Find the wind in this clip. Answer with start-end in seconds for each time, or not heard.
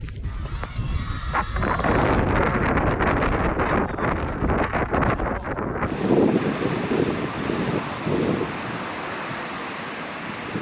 0.0-10.5.